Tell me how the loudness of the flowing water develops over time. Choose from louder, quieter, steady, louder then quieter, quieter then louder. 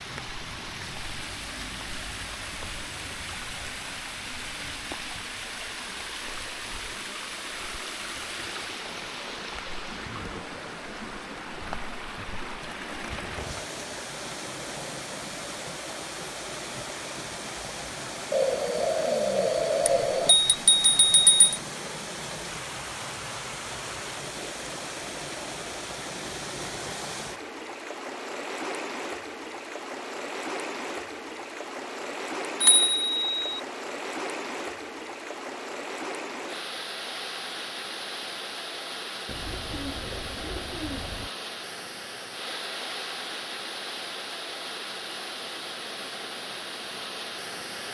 steady.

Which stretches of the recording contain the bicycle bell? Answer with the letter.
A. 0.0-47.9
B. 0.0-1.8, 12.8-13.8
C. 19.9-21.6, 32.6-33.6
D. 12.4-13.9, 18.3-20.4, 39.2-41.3
C.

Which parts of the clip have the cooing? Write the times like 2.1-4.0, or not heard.
12.4-13.9, 18.3-20.4, 39.2-41.3.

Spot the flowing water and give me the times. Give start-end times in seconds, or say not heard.
0.0-47.9.